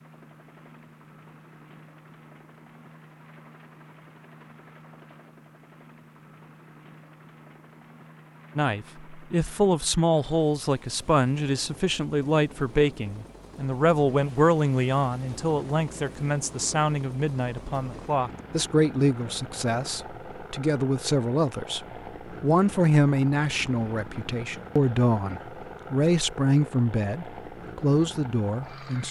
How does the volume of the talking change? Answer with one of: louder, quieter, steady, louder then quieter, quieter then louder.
steady.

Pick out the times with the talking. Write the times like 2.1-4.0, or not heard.
8.6-29.0.